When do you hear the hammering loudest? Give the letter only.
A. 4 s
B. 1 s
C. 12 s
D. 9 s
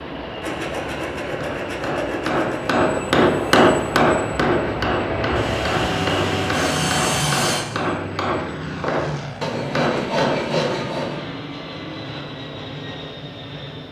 A.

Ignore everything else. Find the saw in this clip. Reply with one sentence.
The saw can be heard from 0.4 to 2.7 s, from 5.3 to 7.7 s and from 9.4 to 11.2 s.